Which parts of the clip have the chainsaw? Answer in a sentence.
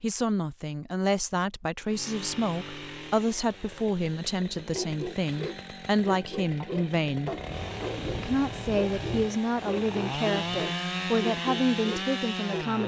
The chainsaw can be heard from 1.9 to 12.8 s.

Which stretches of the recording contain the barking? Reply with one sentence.
You can hear the barking from 4.7 to 12.8 s.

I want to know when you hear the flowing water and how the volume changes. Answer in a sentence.
You can't hear the flowing water here.